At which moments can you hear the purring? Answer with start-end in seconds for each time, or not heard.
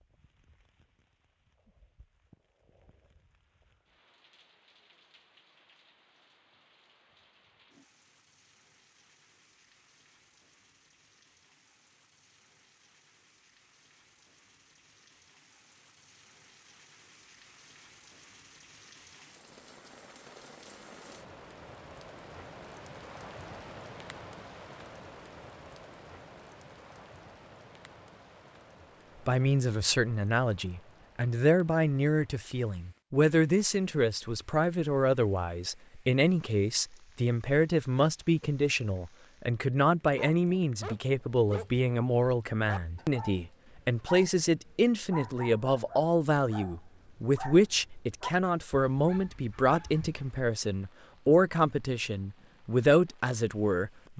not heard.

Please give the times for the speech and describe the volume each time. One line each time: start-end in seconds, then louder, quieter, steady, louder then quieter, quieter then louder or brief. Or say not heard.
29.2-54.1 steady.